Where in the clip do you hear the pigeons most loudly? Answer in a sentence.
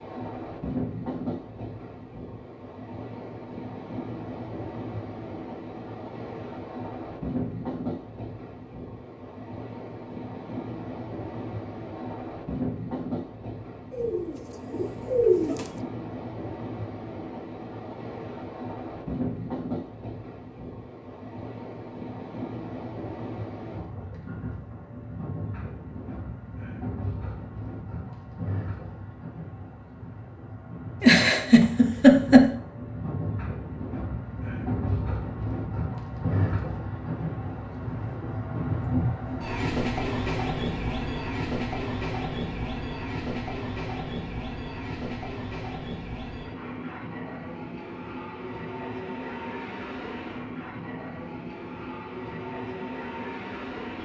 The loudest moment of the pigeons is at 15 seconds.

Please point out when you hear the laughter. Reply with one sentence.
You can hear the laughter from 31.0 to 32.5 s.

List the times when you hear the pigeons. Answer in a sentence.
You can hear the pigeons from 13.9 to 15.7 s.